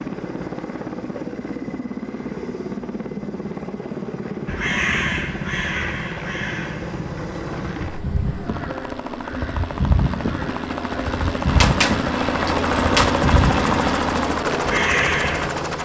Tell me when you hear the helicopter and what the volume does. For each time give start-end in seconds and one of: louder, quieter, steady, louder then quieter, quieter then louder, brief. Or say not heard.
0.0-15.8 louder.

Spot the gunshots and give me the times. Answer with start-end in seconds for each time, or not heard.
11.4-13.2.